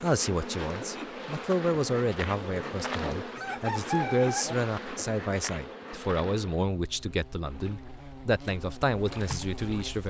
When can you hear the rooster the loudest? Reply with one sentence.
The loudest moment of the rooster is at 4 seconds.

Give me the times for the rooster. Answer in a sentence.
The rooster can be heard from 2.5 to 4.5 s.